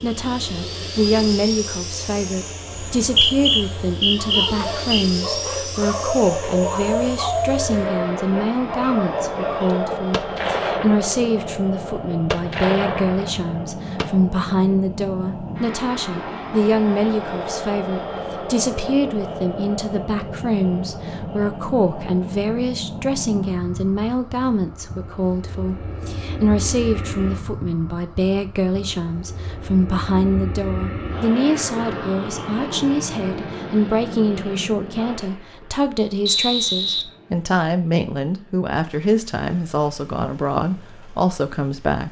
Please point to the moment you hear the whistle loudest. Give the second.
3 s.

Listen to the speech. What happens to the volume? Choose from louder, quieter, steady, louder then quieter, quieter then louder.
steady.